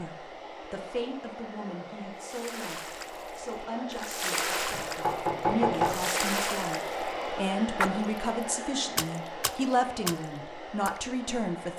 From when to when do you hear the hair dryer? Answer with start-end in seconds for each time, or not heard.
0.0-11.7.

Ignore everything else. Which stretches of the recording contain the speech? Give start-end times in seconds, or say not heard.
0.0-11.7.